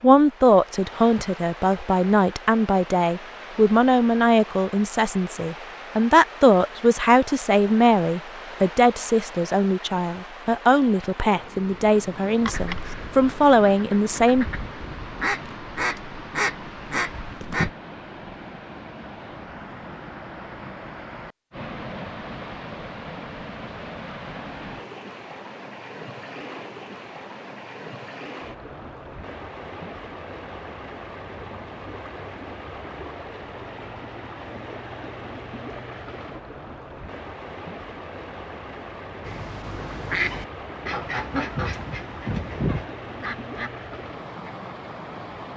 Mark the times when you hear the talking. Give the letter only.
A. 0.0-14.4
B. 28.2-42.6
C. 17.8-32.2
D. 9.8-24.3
A.